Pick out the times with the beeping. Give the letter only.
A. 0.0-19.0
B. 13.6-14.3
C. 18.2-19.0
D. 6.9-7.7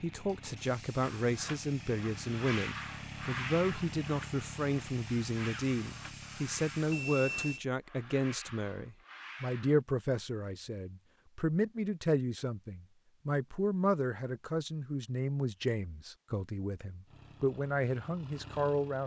D.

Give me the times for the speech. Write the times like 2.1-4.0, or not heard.
0.0-19.0.